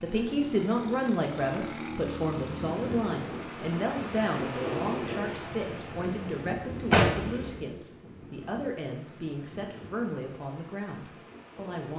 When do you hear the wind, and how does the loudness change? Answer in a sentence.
You can hear the wind from 2.4 to 11.9 s, getting quieter.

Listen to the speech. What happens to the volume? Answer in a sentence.
The volume of the speech goes down.